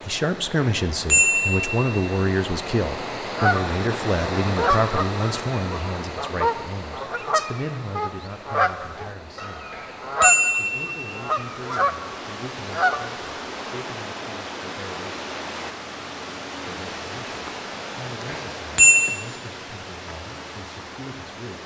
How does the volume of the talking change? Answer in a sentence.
The loudness of the talking goes down.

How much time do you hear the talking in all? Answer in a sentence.
You can hear the talking for 19 seconds altogether.